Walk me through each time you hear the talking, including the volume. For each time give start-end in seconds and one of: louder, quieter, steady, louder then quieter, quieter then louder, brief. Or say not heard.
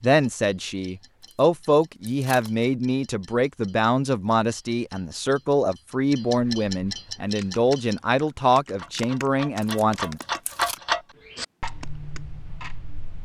0.0-10.2 steady.